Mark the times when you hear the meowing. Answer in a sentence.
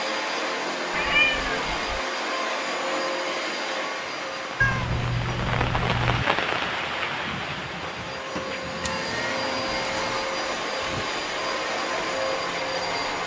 You can hear the meowing from 0.9 to 2.0 s, from 4.6 to 6.2 s and from 8.8 to 10.2 s.